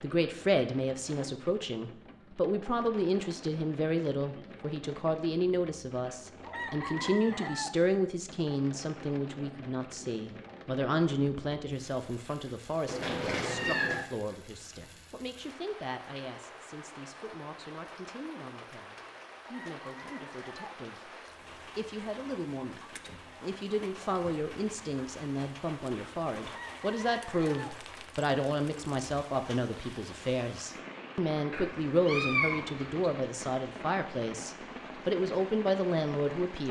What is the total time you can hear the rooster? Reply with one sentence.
You can hear the rooster for 4 seconds altogether.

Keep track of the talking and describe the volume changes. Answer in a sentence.
The volume of the talking goes down, then up.